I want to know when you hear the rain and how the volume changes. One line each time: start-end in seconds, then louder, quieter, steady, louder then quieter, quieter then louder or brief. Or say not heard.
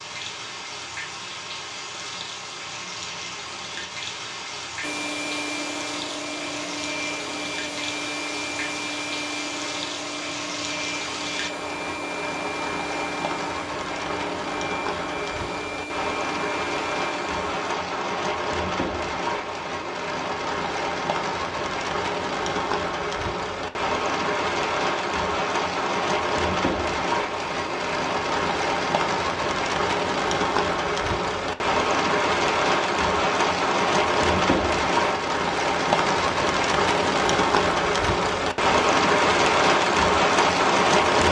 0.0-41.2 louder.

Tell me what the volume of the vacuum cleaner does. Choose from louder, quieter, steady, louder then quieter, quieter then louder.
steady.